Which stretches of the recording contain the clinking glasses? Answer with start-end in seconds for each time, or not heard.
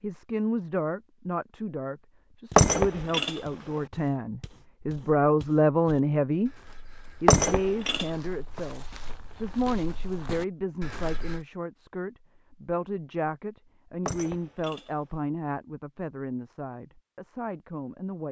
2.5-3.4, 7.2-8.1, 14.1-14.9.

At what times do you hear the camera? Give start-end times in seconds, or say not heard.
not heard.